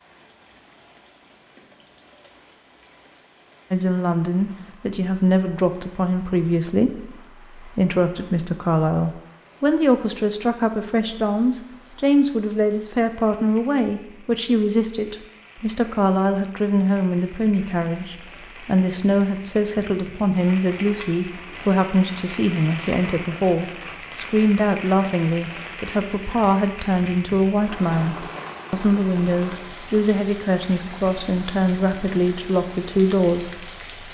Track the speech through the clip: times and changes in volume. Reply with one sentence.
The speech can be heard from 3.7 to 33.8 s, at a steady volume.